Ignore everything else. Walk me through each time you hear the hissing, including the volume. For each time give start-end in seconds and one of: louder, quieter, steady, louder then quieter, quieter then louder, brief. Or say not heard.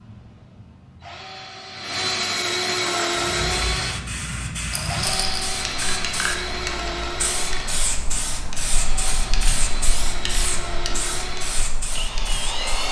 3.0-12.8 steady.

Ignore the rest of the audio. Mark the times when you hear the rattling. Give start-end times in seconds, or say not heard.
4.7-5.5.